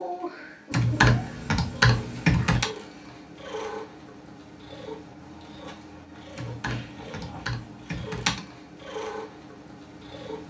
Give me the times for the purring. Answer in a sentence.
The purring can be heard from 0.0 to 10.4 s.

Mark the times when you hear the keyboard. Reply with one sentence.
The keyboard can be heard from 0.7 to 2.6 s and from 6.3 to 8.4 s.